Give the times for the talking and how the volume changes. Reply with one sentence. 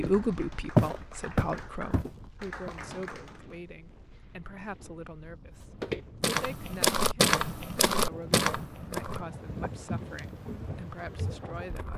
You can hear the talking from 0.0 to 11.9 s, getting quieter.